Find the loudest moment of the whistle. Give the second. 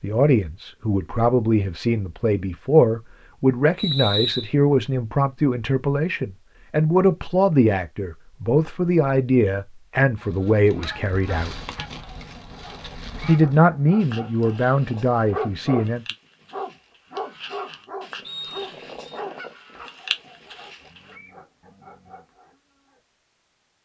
4 s.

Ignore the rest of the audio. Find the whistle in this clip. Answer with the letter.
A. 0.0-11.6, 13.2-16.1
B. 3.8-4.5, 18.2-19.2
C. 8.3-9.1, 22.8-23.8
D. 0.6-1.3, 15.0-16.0
B.